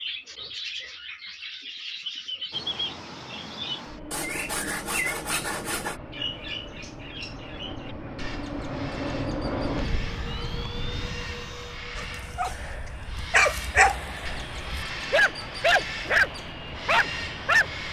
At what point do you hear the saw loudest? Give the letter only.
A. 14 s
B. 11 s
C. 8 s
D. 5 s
D.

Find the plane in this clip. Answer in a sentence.
The plane can be heard from 2.5 to 17.8 s.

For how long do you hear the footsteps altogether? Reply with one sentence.
The footsteps can't be heard in this clip.